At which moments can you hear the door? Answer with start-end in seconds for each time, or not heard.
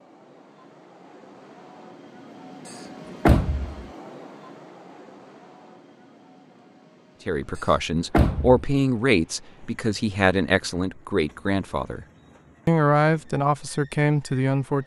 2.6-3.8, 7.5-8.7.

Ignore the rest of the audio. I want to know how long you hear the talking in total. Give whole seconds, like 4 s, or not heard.
7 s.